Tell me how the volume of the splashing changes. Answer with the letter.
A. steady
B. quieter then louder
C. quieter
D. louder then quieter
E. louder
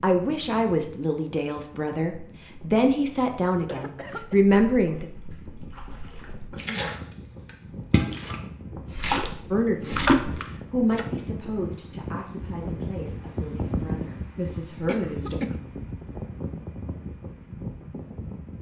E.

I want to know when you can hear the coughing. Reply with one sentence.
You can hear the coughing from 3.6 to 4.5 s and from 14.8 to 15.6 s.